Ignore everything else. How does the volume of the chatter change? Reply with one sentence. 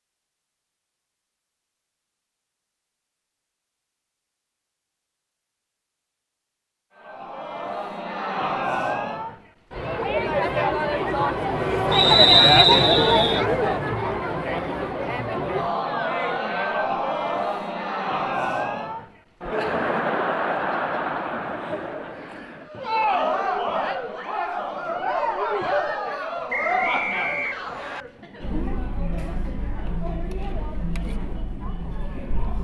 The volume of the chatter goes down.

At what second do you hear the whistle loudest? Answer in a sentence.
The loudest moment of the whistle is at 12 seconds.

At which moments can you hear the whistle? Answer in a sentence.
You can hear the whistle from 11.9 to 13.4 s and from 26.5 to 28.1 s.